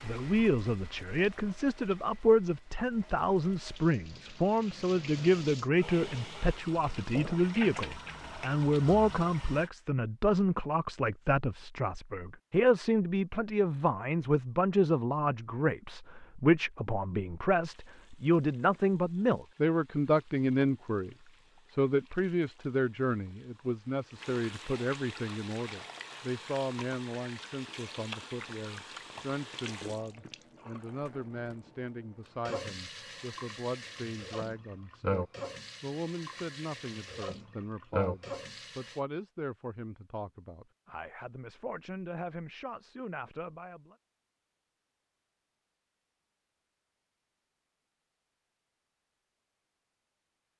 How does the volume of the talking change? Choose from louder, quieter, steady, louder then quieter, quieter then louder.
quieter.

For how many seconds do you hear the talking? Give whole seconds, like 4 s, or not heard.
44 s.